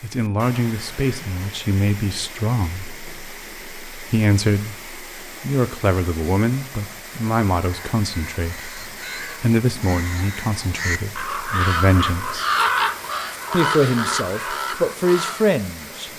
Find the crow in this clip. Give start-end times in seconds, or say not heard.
7.6-15.6.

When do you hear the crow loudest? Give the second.
13 s.